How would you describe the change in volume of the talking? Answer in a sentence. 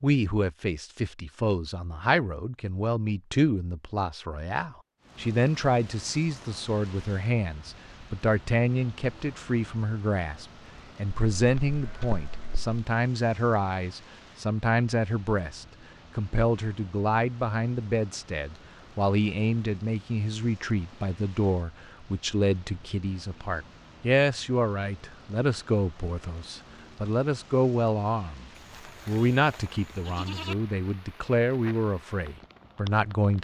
The volume of the talking stays about the same.